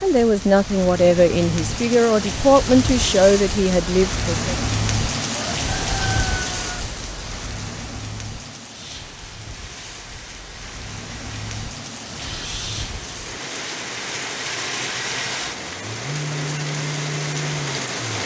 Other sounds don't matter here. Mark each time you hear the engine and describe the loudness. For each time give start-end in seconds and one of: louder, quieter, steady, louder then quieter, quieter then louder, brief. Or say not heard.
8.7-18.2 louder.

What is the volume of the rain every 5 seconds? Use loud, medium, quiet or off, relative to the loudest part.
loud, loud, medium, loud.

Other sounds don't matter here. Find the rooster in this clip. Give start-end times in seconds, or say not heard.
5.3-6.8.